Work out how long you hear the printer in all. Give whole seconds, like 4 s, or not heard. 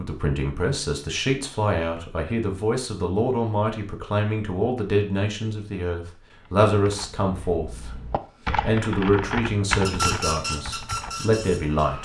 2 s.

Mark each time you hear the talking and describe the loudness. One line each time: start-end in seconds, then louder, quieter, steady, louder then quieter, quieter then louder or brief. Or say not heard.
0.0-12.0 steady.